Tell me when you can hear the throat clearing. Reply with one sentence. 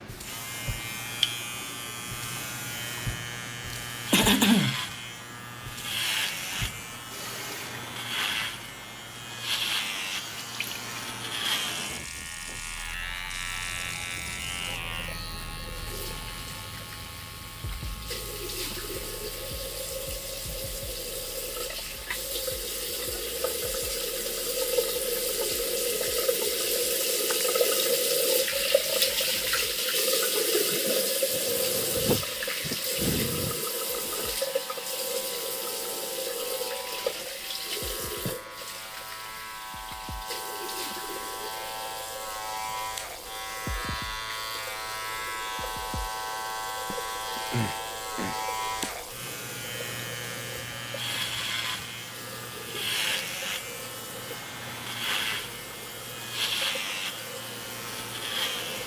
You can hear the throat clearing from 3.7 to 4.8 s, from 31.3 to 33.6 s and from 46.9 to 48.9 s.